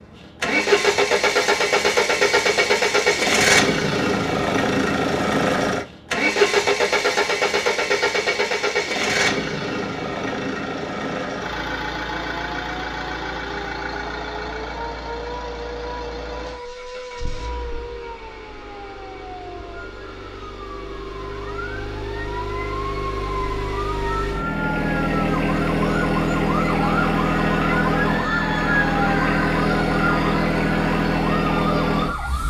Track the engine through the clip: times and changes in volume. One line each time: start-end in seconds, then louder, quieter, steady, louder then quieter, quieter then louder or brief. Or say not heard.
0.0-32.4 quieter then louder.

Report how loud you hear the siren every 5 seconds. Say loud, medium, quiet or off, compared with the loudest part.
off, off, medium, medium, medium, loud, loud.